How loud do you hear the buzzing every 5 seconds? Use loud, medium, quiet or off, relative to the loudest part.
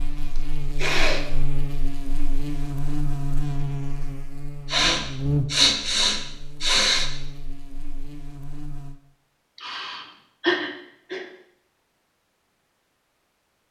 loud, loud, off.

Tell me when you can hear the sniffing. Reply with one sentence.
The sniffing can be heard from 0.3 to 1.2 s, from 4.7 to 7.1 s and from 9.6 to 11.2 s.